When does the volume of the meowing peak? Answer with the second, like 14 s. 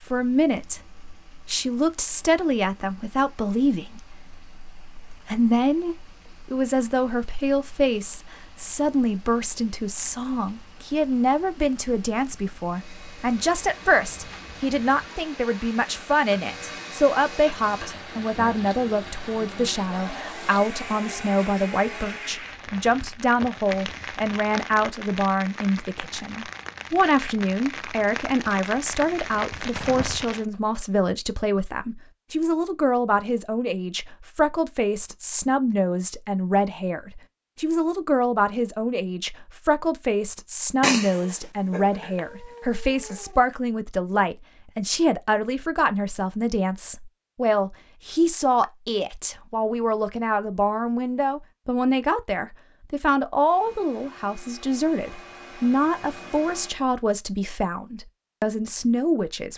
41 s.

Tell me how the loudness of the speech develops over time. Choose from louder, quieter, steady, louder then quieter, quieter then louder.
steady.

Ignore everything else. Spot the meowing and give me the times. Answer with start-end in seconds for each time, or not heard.
40.8-43.4.